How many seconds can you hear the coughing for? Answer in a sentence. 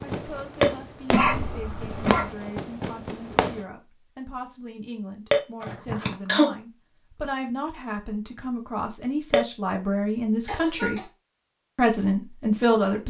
The coughing can be heard for 3 seconds in total.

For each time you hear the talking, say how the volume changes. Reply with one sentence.
You can hear the talking from 0.0 to 11.0 s, getting louder; and briefly from 11.8 to 13.0 s.